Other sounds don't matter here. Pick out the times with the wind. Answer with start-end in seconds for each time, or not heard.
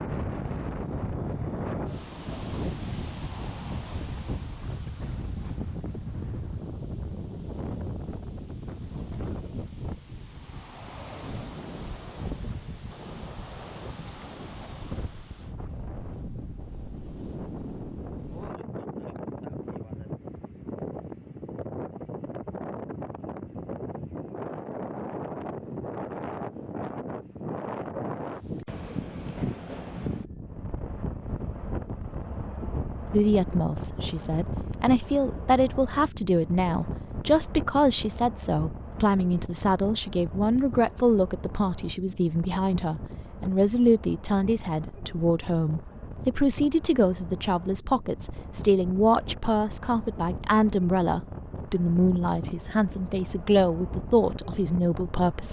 0.0-55.4.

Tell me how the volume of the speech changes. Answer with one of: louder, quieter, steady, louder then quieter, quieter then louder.
steady.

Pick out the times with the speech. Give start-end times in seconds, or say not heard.
33.1-55.4.